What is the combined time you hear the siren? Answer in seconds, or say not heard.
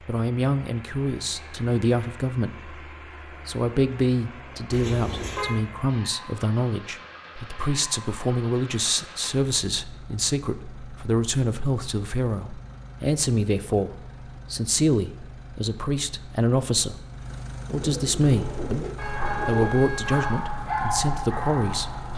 not heard.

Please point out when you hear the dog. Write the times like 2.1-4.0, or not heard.
18.1-22.1.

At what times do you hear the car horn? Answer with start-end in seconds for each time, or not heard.
4.7-5.6, 18.9-20.4.